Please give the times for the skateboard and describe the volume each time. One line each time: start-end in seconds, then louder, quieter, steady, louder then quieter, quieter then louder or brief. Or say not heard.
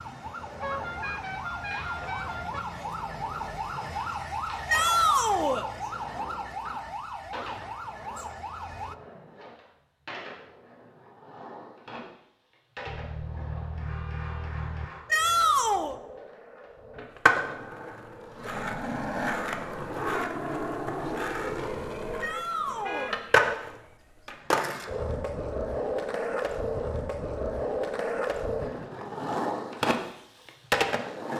0.0-31.3 louder.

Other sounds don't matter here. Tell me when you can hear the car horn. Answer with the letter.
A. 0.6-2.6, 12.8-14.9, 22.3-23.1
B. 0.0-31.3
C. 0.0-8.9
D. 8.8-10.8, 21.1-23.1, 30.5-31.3
A.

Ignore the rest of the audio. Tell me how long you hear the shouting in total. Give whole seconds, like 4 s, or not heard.
3 s.